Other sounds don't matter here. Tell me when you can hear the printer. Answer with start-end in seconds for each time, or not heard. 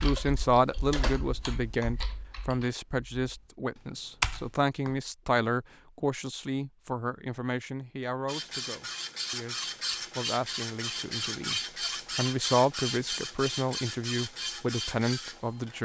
8.2-15.8.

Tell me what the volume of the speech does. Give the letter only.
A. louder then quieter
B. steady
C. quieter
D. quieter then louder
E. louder
D.